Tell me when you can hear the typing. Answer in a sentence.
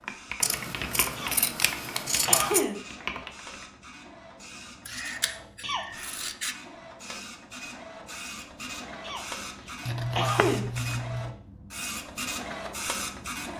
You can hear the typing from 0.0 to 3.6 s.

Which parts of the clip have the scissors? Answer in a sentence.
The scissors can be heard from 0.4 to 2.6 s, from 4.8 to 6.5 s and from 9.8 to 11.3 s.